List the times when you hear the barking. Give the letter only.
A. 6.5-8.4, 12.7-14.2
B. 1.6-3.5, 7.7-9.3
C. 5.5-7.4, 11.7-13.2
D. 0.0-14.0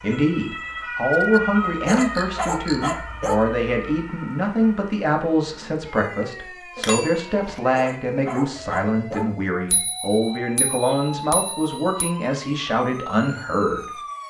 B.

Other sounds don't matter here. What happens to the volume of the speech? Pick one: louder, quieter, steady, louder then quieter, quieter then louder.
steady.